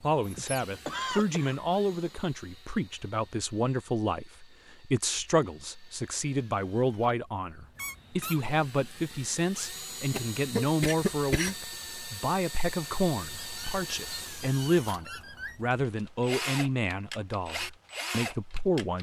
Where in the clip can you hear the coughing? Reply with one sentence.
You can hear the coughing from 0.3 to 2.1 s and from 10.1 to 11.6 s.